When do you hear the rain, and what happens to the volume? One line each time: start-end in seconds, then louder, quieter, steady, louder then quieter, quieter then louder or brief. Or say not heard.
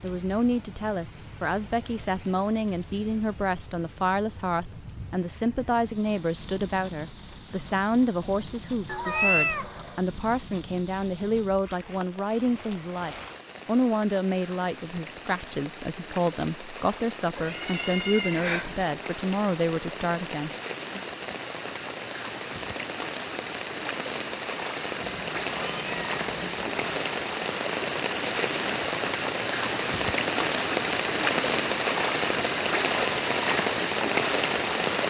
0.0-35.0 louder.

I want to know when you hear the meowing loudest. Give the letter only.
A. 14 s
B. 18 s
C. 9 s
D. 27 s
C.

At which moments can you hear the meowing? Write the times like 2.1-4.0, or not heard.
8.8-10.0, 17.4-18.9, 25.0-27.1.